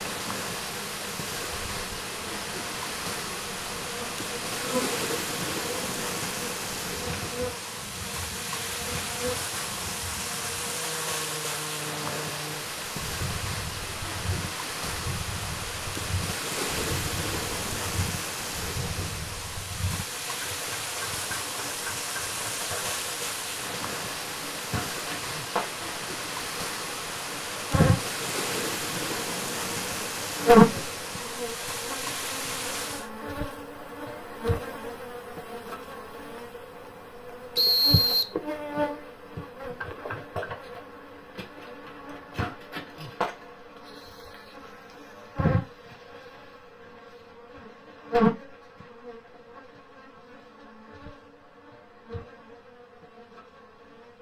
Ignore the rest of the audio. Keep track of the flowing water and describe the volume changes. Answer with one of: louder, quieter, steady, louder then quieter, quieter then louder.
steady.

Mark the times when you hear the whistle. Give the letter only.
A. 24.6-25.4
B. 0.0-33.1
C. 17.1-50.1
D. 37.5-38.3
D.